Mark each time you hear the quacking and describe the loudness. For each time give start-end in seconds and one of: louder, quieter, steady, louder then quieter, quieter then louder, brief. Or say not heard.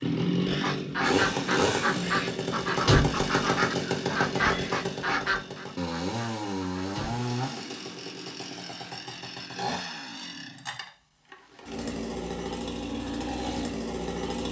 0.5-7.3 quieter.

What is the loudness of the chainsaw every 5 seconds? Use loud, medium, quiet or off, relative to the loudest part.
loud, medium, medium.